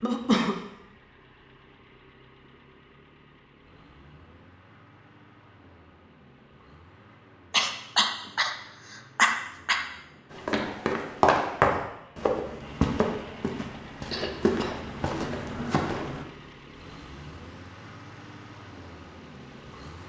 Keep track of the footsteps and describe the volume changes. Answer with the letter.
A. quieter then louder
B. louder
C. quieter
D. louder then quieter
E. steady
C.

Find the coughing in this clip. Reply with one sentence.
The coughing can be heard from 0.0 to 0.6 s, from 7.5 to 9.8 s and from 14.1 to 14.8 s.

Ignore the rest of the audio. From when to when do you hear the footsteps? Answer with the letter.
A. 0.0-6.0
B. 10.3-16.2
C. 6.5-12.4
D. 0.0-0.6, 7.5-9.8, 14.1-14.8
B.